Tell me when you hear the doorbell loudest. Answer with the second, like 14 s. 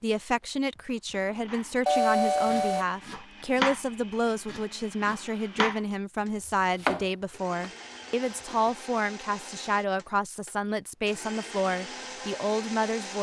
2 s.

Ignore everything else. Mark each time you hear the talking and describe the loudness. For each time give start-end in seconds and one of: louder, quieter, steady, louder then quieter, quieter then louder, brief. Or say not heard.
0.0-13.1 steady.